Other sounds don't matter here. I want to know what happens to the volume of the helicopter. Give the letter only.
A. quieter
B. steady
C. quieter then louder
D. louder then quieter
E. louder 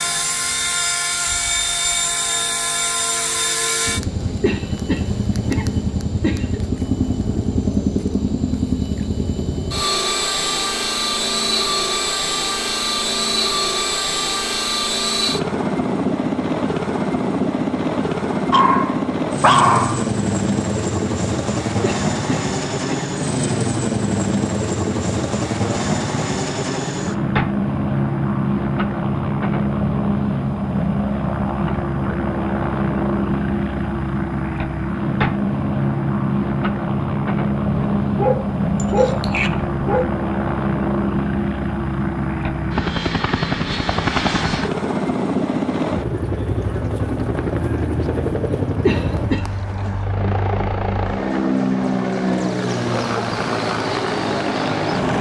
B.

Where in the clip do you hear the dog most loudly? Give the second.
20 s.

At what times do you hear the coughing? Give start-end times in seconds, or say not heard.
4.4-6.6, 21.8-23.1, 48.9-49.6.